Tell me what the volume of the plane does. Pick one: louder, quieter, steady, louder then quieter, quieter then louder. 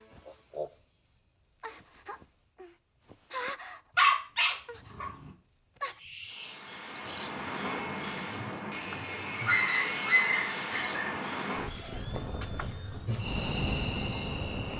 quieter.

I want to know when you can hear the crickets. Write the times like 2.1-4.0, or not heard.
0.0-14.7.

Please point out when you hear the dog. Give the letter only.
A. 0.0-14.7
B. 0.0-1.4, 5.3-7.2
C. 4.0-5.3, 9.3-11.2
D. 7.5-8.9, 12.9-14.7
C.